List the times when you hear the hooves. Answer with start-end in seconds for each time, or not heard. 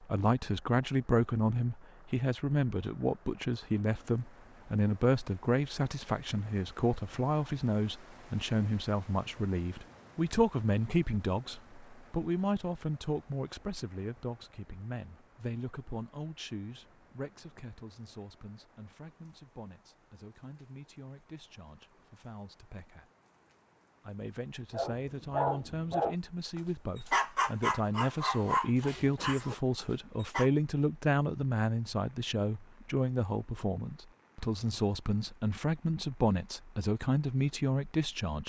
not heard.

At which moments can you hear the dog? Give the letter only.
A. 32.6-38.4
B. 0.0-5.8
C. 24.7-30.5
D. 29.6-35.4
C.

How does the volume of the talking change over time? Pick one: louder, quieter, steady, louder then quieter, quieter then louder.
quieter then louder.